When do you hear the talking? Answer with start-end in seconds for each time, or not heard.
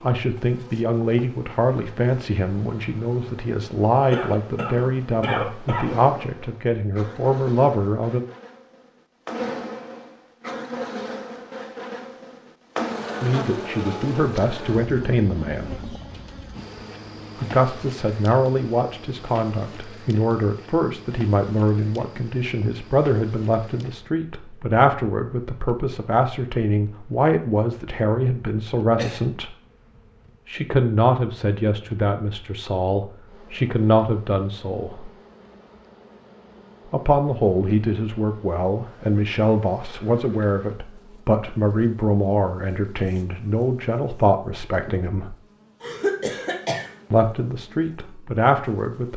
0.0-8.2, 13.2-15.9, 17.4-29.6, 30.4-35.1, 36.9-45.4, 47.1-49.1.